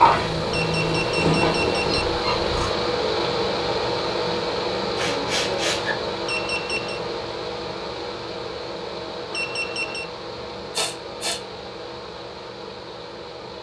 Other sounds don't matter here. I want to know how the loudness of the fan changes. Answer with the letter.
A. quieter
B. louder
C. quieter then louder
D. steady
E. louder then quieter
A.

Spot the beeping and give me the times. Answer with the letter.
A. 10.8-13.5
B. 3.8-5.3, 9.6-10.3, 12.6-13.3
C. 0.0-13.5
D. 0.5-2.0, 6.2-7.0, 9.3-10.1
D.